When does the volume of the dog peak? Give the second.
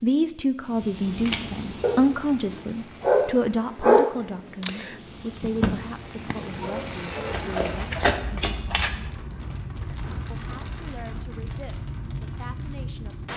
4 s.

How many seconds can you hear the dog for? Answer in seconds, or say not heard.
6 s.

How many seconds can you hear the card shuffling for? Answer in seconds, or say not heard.
2 s.